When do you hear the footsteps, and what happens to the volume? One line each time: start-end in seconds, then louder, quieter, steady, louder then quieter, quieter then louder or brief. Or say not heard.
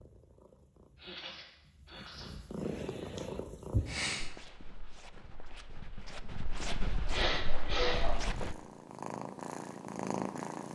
4.2-8.6 louder.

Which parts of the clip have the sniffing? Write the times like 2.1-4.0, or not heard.
0.9-2.4, 6.5-8.2.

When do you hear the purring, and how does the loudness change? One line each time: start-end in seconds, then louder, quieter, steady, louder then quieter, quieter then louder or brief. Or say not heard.
0.0-4.3 quieter then louder
8.0-10.6 brief.